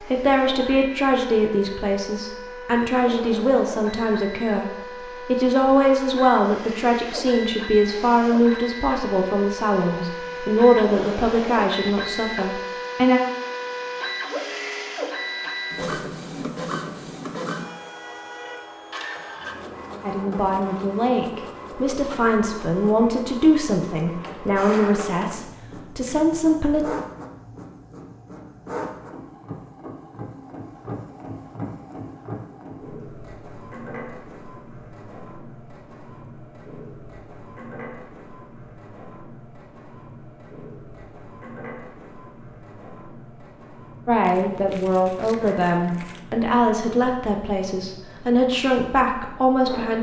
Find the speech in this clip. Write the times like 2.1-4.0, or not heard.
0.0-13.2, 20.0-26.9, 44.0-49.9.